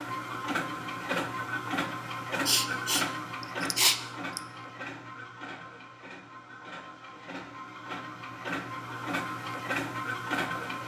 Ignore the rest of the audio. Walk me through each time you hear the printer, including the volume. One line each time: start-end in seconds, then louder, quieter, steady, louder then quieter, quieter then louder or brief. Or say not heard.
0.0-10.8 quieter then louder.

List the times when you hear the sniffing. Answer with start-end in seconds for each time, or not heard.
2.5-4.4.